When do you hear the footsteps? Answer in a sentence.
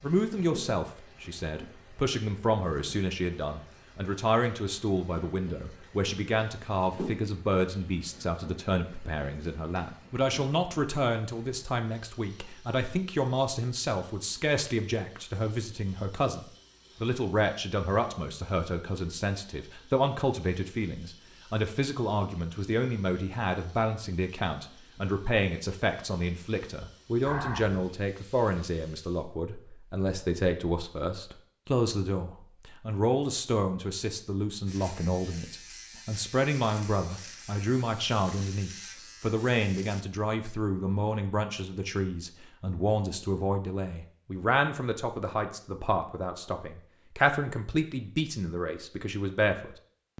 You can't hear the footsteps here.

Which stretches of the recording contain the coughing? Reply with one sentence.
You can hear the coughing from 27.2 to 27.9 s.